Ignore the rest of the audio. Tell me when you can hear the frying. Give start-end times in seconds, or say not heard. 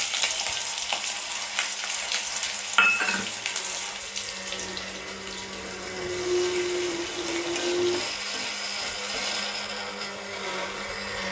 0.0-9.7.